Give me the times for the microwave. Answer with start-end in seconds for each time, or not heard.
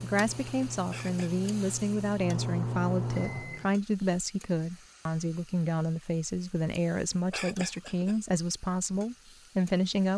0.0-3.7.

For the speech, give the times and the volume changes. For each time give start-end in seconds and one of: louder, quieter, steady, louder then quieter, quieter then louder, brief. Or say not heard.
0.0-10.1 steady.